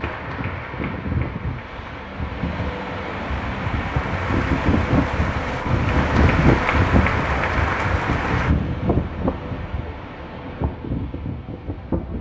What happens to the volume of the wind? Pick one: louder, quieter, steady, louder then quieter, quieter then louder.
louder then quieter.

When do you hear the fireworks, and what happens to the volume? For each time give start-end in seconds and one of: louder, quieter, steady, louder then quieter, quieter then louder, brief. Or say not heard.
not heard.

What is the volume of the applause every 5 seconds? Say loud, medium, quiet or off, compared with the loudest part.
medium, loud, off.